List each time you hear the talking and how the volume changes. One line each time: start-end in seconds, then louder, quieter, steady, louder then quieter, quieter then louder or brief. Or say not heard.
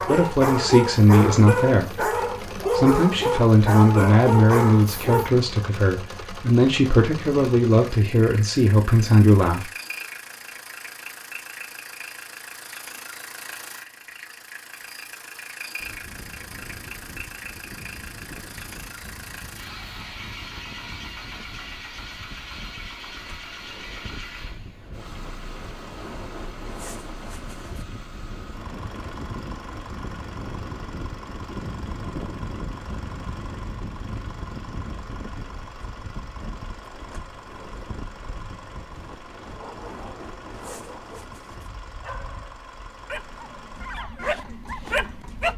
0.1-9.7 steady.